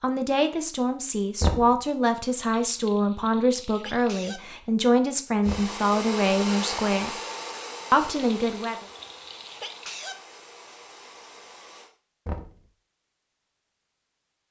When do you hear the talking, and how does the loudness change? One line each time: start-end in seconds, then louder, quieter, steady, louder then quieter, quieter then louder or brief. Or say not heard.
0.0-7.2 steady
7.9-8.8 brief.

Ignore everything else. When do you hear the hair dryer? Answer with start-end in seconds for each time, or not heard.
5.4-11.9.